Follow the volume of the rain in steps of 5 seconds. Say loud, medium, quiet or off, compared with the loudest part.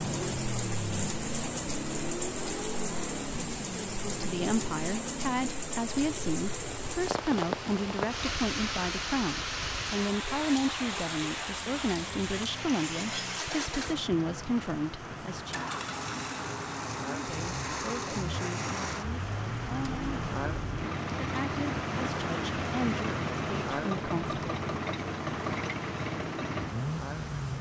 loud, loud, loud, medium, loud, medium.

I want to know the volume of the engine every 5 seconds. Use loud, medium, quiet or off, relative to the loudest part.
loud, medium, medium, loud, loud, loud.